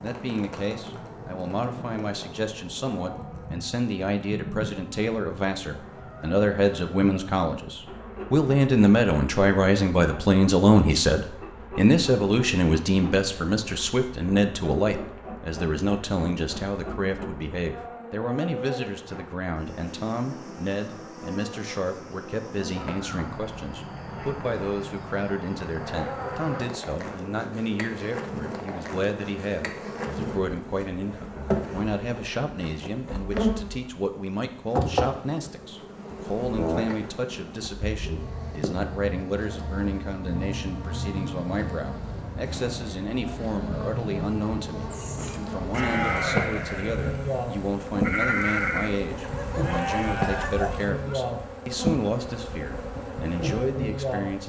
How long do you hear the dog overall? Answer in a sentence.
You can hear the dog for 2 seconds altogether.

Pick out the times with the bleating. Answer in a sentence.
You can hear the bleating from 44.9 to 50.9 s.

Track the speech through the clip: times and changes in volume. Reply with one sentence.
The speech can be heard from 0.0 to 54.4 s, getting quieter.